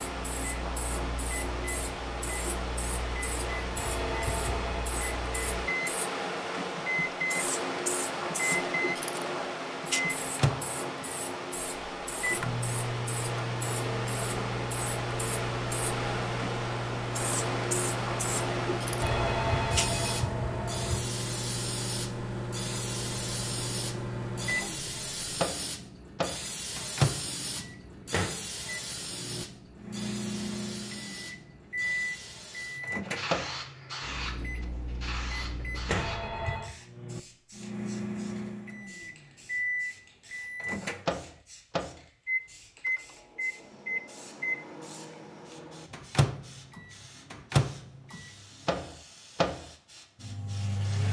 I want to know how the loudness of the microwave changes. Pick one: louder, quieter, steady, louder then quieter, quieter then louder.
steady.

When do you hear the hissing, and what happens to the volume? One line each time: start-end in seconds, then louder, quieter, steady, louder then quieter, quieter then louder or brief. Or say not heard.
0.0-51.0 quieter.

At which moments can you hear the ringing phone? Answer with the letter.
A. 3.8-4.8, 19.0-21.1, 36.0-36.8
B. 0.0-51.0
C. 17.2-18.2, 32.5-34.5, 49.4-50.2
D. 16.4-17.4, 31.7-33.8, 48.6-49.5
A.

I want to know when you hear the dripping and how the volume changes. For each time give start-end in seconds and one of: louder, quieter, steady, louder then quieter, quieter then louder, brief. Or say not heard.
not heard.